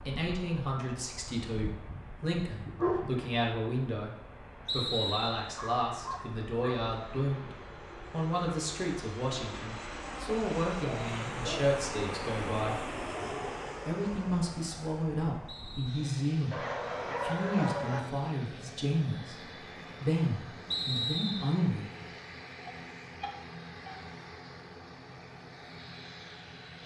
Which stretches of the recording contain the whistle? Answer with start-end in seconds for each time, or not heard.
4.7-5.5, 15.4-16.1, 20.7-21.6.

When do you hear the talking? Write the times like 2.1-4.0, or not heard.
0.0-12.8, 13.8-21.9.